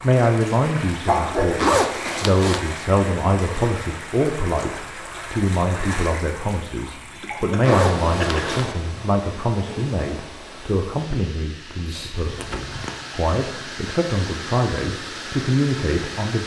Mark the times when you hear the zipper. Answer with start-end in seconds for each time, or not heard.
1.6-2.6, 7.6-8.7, 12.2-13.1.